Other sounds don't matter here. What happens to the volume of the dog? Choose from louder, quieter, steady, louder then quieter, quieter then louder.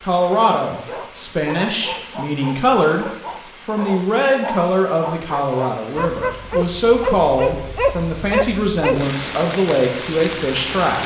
louder.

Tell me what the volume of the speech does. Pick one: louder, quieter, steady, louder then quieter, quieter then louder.
steady.